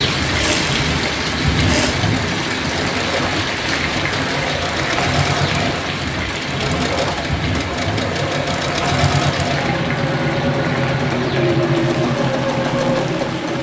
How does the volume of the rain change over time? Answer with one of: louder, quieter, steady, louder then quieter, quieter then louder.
quieter.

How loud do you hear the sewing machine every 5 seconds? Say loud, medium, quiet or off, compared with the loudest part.
medium, loud, loud.